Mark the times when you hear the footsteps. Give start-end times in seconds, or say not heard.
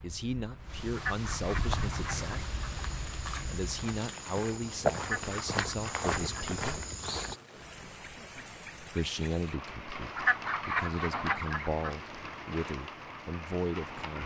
1.6-7.4.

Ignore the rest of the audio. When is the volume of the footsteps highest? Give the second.
5 s.